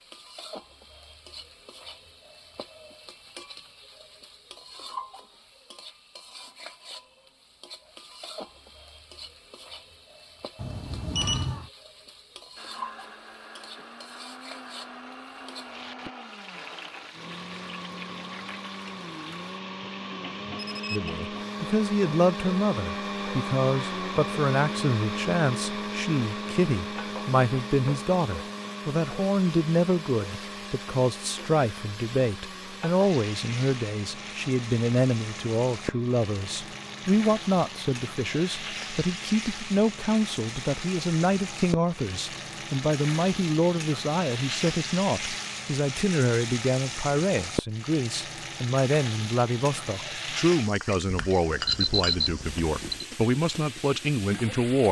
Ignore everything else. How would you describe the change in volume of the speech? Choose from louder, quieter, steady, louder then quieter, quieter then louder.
steady.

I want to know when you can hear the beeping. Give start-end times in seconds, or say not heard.
10.6-11.7, 20.6-21.1, 51.2-53.0.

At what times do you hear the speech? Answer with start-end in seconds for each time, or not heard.
20.9-54.8.